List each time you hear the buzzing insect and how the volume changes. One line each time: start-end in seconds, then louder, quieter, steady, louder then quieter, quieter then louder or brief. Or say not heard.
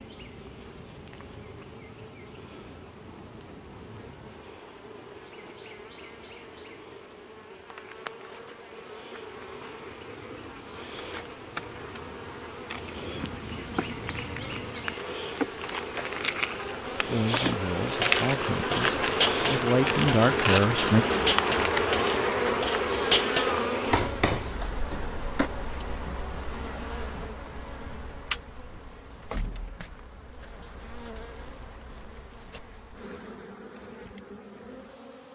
0.0-35.3 louder then quieter.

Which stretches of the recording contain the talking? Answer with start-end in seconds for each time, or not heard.
16.9-21.1.